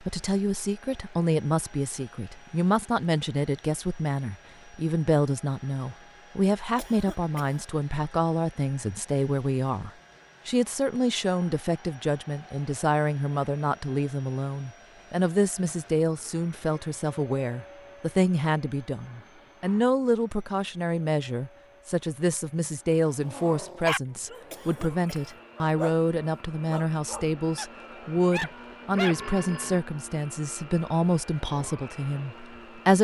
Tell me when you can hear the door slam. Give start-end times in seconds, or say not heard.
not heard.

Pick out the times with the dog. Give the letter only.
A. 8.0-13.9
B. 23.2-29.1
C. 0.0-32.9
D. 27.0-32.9
B.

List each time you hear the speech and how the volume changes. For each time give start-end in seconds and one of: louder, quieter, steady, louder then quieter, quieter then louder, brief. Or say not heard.
0.0-32.9 steady.